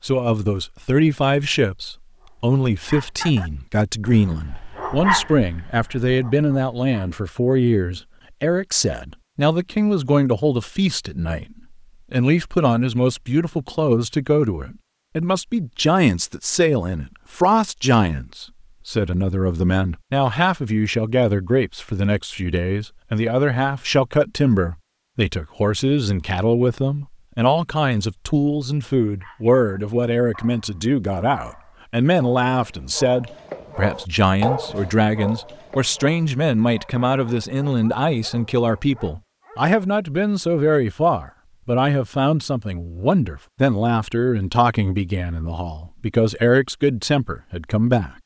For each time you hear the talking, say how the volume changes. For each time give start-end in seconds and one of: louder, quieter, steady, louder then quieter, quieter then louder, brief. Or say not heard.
0.0-48.1 steady.